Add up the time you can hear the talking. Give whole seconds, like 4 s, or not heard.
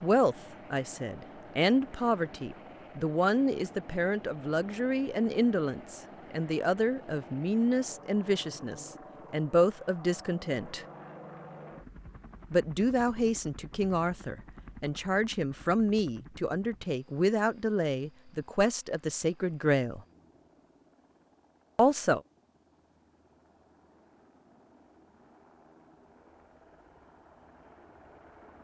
19 s.